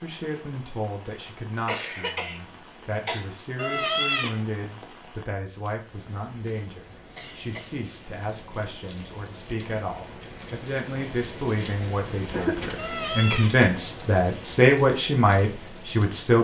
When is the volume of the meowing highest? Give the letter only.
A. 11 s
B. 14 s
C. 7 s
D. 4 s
D.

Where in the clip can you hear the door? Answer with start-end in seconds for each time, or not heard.
not heard.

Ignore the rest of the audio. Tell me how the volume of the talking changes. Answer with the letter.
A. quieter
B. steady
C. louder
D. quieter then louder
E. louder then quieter
C.